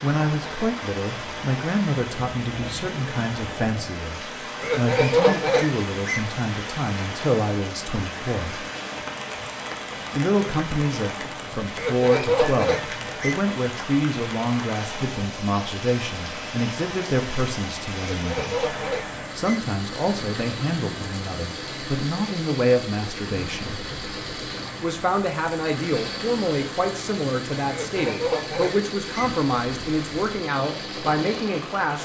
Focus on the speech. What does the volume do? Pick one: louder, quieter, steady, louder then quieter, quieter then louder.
steady.